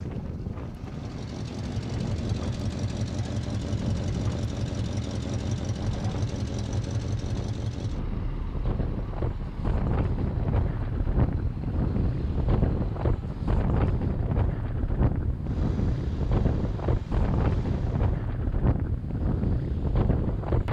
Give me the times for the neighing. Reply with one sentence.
The neighing can't be heard in this clip.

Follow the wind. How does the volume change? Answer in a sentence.
The volume of the wind goes up.